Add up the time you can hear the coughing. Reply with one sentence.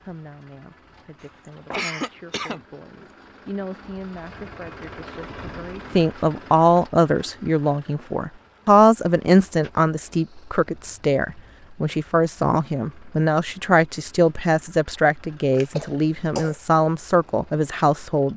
The coughing can be heard for 4 seconds in total.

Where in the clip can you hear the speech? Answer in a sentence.
You can hear the speech from 0.1 to 18.3 s.